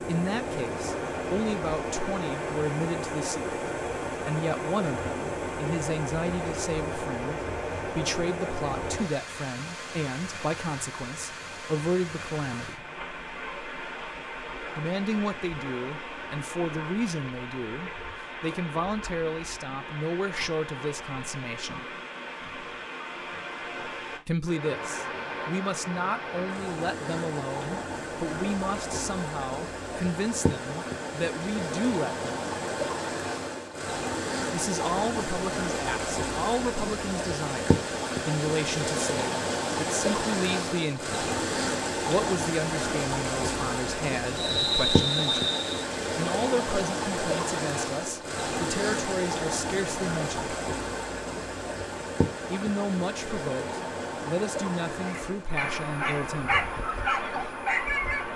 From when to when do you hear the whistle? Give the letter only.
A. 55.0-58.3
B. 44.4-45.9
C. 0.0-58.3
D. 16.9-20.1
B.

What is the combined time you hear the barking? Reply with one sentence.
The barking can be heard for 3 seconds in total.